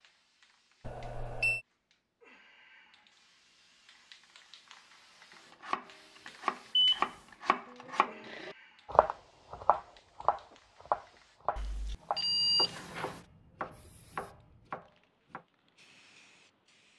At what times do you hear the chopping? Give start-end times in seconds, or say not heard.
5.5-15.4.